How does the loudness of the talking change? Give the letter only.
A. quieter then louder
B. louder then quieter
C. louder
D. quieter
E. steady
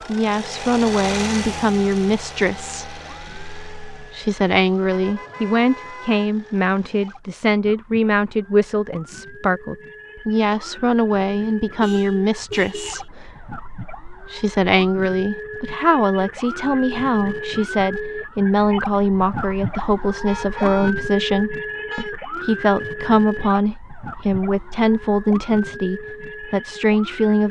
E.